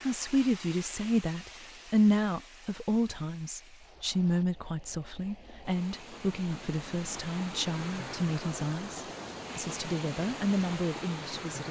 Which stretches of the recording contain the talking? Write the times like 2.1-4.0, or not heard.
0.0-11.6.